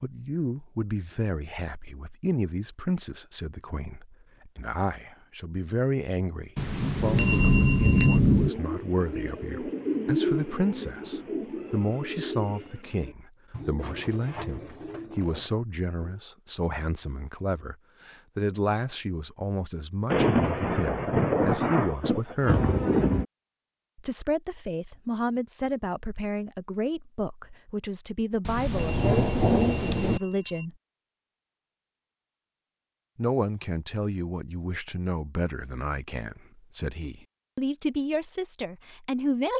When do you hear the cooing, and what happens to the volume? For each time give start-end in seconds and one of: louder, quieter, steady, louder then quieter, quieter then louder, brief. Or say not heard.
8.3-16.2 quieter.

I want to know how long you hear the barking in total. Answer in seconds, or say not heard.
not heard.